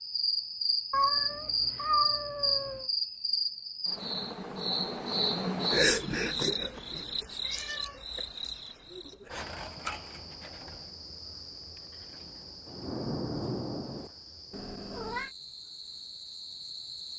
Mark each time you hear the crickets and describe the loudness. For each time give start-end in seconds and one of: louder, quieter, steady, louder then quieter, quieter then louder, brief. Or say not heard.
0.0-17.1 quieter.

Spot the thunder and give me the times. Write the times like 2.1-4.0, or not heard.
12.7-14.1.